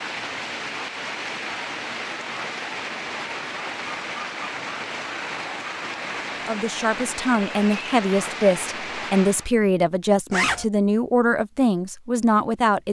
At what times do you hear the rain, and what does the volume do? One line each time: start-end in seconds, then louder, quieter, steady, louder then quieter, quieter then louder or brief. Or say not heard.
0.0-9.5 steady.